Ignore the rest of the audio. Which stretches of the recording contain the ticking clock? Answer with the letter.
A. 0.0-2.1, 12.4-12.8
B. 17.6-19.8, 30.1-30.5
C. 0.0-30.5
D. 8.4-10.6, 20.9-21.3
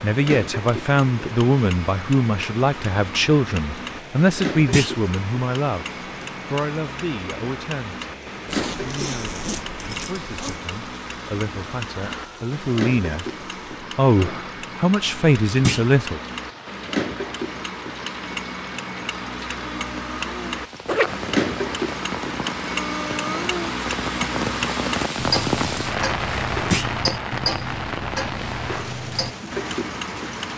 C.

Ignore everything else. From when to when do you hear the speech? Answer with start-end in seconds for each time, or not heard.
0.0-13.2, 13.9-16.2.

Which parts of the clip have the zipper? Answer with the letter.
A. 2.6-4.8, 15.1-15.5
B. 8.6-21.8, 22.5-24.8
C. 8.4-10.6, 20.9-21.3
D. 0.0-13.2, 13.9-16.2
C.